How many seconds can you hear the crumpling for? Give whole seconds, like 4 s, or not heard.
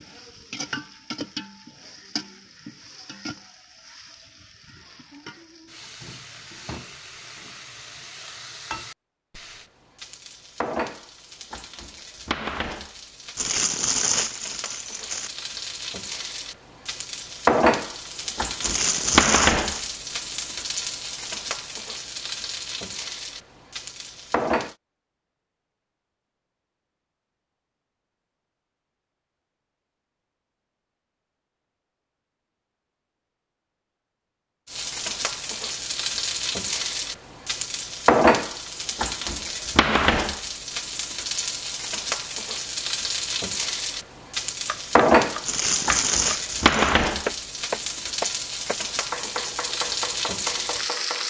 5 s.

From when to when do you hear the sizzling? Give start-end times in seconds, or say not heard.
0.0-24.8, 34.7-51.2.